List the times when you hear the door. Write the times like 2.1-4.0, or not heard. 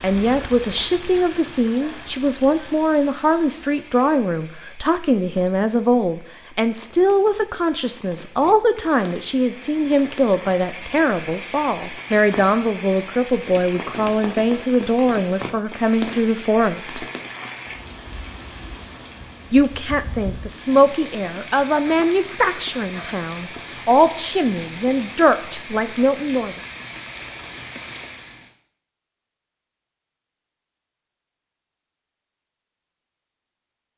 not heard.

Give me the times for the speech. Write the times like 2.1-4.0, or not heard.
0.0-17.1, 19.5-26.6.